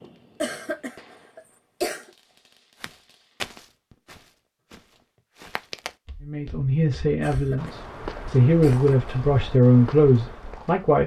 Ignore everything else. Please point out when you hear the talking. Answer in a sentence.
You can hear the talking from 6.2 to 11.0 s.